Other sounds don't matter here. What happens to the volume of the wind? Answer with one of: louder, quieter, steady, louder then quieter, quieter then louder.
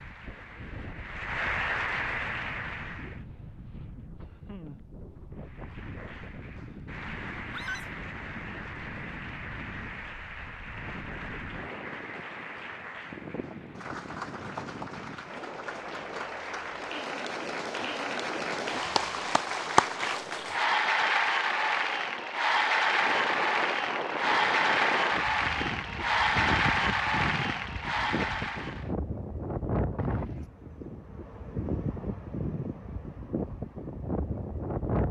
louder.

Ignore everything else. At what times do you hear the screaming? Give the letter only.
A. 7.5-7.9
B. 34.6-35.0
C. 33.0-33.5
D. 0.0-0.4
A.